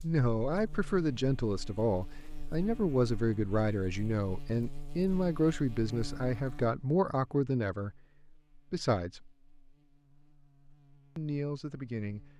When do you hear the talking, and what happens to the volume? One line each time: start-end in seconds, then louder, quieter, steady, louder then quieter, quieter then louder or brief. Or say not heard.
0.0-9.3 steady
11.2-12.2 brief.